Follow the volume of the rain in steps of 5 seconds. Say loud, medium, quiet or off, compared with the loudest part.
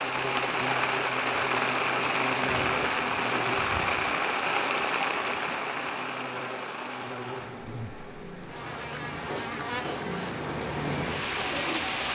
loud, medium, loud.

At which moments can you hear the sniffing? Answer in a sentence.
You can hear the sniffing from 2.7 to 3.5 s and from 9.2 to 10.3 s.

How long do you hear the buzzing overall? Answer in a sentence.
You can hear the buzzing for 12 seconds altogether.